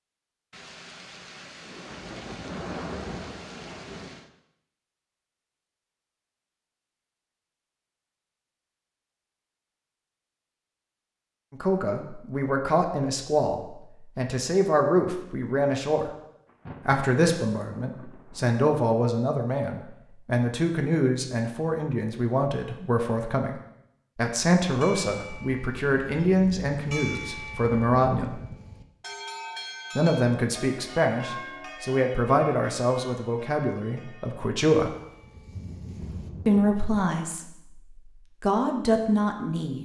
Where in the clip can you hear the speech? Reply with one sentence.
The speech can be heard from 11.5 to 16.1 s, from 16.9 to 23.6 s, from 24.1 to 28.4 s, from 29.9 to 35.0 s, from 36.5 to 37.5 s and from 38.4 to 39.8 s.